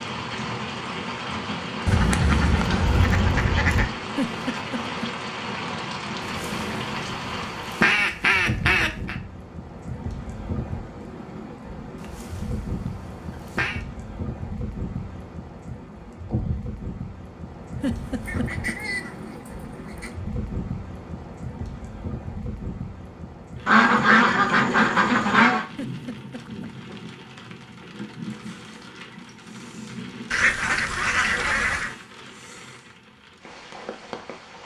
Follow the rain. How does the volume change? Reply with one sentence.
The loudness of the rain goes down.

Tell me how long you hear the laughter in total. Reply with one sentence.
You can hear the laughter for 3 seconds altogether.